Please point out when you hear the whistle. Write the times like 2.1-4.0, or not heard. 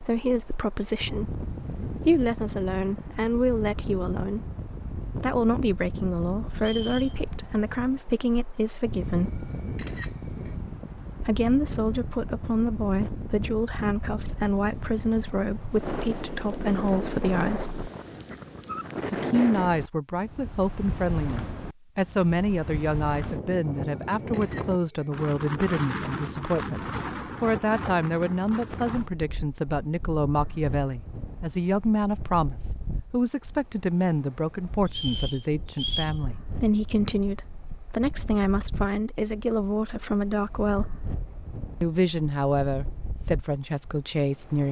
6.5-7.2, 34.9-36.1.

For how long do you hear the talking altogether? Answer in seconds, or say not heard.
40 s.